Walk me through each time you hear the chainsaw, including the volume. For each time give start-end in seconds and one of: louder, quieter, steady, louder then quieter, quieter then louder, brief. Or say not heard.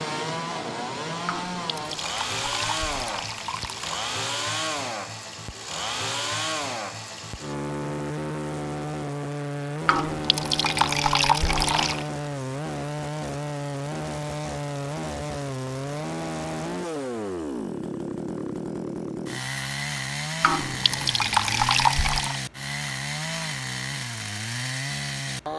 0.0-25.5 steady.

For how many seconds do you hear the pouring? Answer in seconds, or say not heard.
7 s.